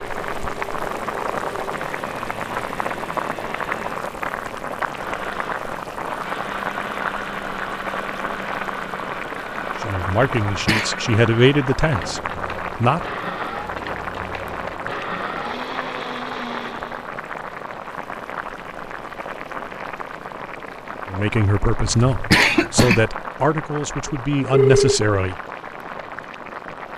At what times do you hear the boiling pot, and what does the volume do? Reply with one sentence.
You can hear the boiling pot from 0.0 to 26.9 s, getting quieter.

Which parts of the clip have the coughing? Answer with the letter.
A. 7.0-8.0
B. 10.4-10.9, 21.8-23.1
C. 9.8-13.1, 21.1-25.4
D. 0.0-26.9
B.